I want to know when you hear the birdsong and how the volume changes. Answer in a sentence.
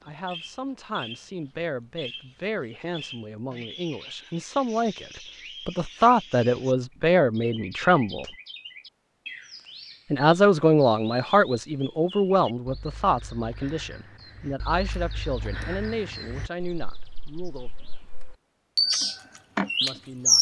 The birdsong can be heard from 0.0 to 20.3 s, getting louder.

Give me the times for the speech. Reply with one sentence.
You can hear the speech from 0.0 to 8.2 s, from 10.1 to 17.9 s and from 19.8 to 20.3 s.